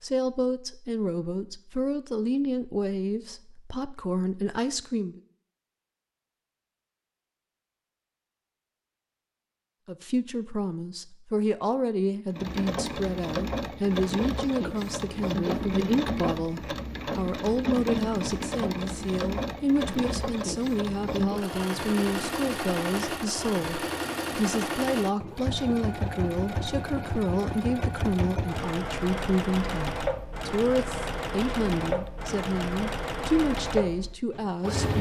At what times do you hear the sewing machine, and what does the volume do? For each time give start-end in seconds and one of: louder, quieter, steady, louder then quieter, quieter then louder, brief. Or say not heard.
12.3-34.9 steady.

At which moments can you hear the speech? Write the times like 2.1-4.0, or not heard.
0.0-5.2, 9.8-34.9.